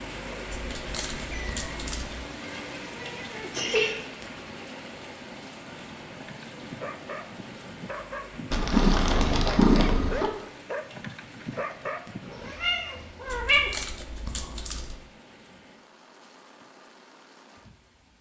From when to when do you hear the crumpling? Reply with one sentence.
The crumpling can be heard from 0.5 to 2.1 s and from 13.2 to 15.1 s.